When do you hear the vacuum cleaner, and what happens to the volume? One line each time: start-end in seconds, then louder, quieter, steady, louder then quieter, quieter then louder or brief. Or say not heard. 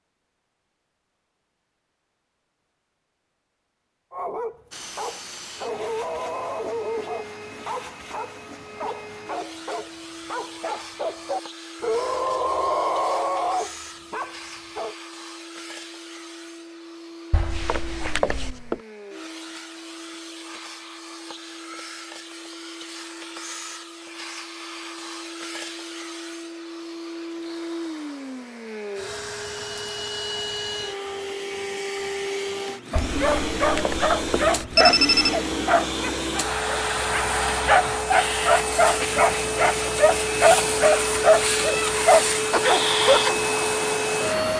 4.7-44.5 louder.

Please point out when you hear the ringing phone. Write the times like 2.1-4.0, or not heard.
17.3-18.8, 33.0-35.4.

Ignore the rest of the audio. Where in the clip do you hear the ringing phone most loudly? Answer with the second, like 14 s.
35 s.